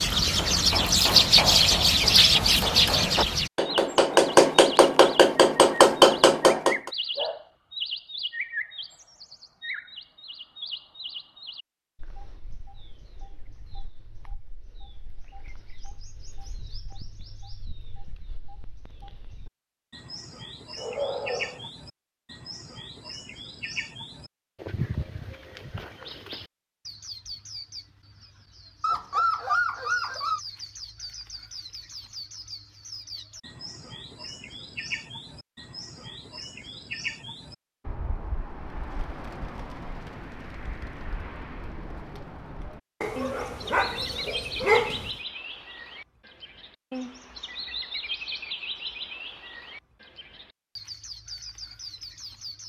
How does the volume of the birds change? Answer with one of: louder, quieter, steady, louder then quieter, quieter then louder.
quieter then louder.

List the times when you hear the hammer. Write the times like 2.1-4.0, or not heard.
0.2-6.9.